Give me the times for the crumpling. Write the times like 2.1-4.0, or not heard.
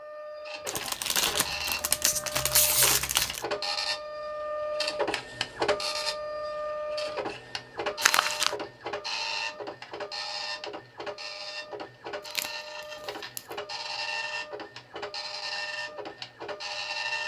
0.7-3.5, 8.0-8.6, 12.2-13.6.